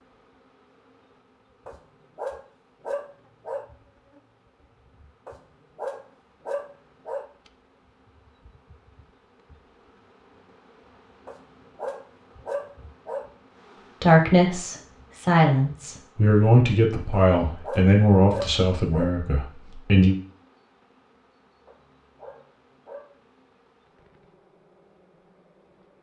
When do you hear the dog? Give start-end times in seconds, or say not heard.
1.6-3.6, 5.2-7.2, 11.2-13.3, 17.1-19.1, 21.6-23.1.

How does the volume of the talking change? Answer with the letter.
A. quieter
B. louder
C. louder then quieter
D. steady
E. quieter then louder
A.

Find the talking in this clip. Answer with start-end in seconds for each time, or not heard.
14.0-20.1.